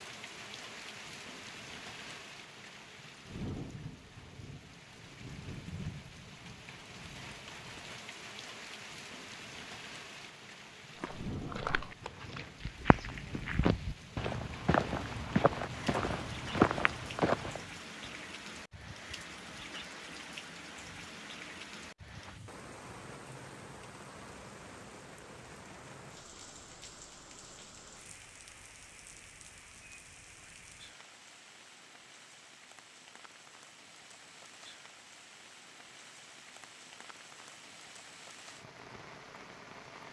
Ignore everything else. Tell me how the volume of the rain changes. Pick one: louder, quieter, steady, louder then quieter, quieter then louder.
quieter.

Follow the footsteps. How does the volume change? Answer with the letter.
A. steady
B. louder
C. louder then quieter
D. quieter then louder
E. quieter
B.